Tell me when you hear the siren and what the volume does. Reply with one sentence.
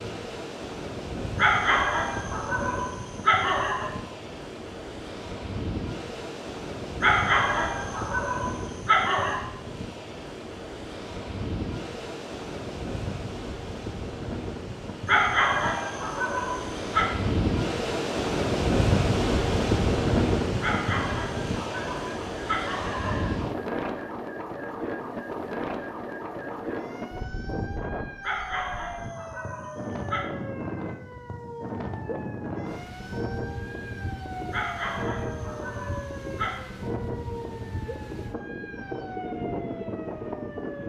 The siren can be heard from 21.8 to 40.8 s, at a steady volume.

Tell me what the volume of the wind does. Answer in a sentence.
The volume of the wind goes up, then down.